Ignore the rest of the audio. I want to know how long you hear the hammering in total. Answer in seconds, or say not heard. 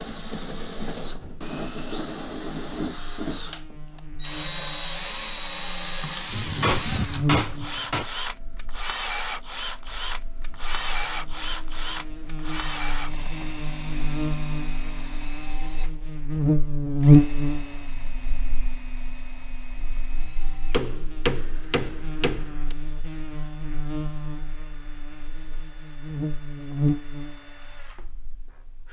4 s.